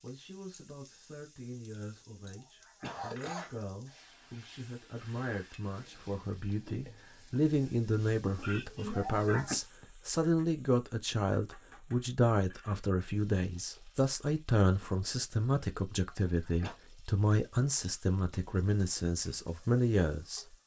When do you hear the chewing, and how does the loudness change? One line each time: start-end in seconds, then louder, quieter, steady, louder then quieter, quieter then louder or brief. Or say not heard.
not heard.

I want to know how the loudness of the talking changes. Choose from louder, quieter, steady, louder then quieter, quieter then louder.
louder.